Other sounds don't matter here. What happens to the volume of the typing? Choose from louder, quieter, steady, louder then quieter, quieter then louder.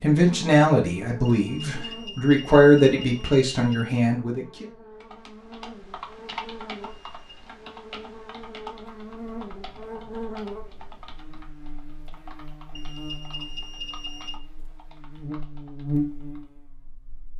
quieter.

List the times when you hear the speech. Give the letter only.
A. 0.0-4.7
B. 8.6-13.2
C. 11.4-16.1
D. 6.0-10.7
A.